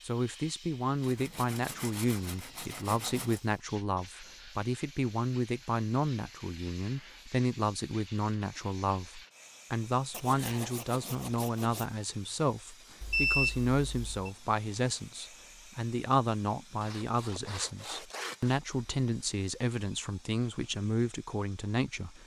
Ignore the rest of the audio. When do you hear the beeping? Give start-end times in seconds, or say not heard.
13.0-14.3.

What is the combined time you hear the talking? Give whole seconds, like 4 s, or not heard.
22 s.